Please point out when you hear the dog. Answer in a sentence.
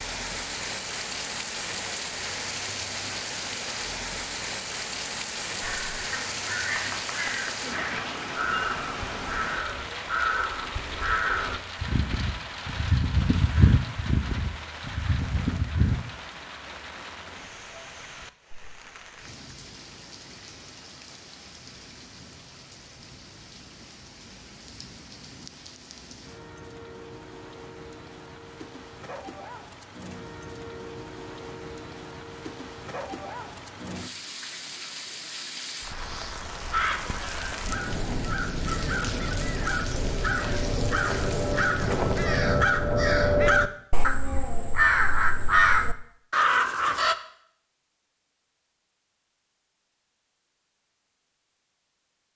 The dog can't be heard in this clip.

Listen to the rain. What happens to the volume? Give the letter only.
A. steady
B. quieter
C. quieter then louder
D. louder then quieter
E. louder
C.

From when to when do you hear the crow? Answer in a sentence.
The crow can be heard from 5.6 to 16.0 s and from 36.7 to 47.1 s.